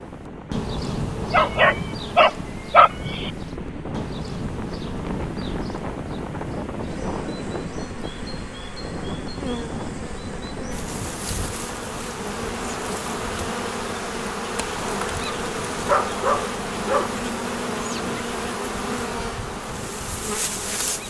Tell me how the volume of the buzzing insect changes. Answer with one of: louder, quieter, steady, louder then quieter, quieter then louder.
quieter then louder.